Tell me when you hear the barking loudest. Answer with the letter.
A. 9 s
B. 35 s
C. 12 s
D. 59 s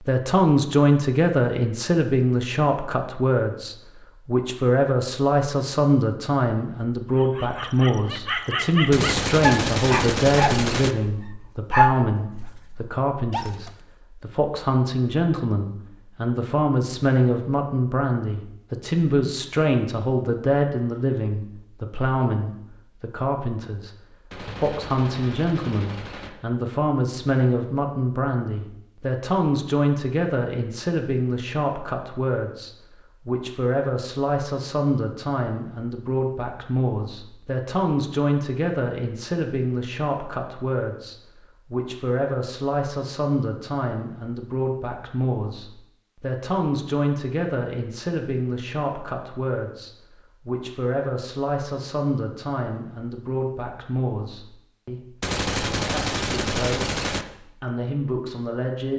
C.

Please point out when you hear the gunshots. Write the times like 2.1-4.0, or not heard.
8.9-10.9, 24.3-26.3, 55.2-57.2.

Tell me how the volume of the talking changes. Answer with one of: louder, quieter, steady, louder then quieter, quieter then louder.
quieter.